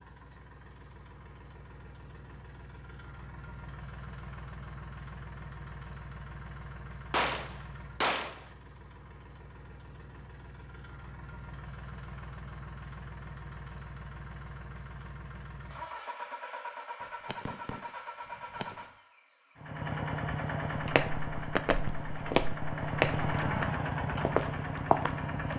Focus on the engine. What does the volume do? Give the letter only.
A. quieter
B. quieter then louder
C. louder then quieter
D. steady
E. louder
E.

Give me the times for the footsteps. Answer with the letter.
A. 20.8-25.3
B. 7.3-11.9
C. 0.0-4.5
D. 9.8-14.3
A.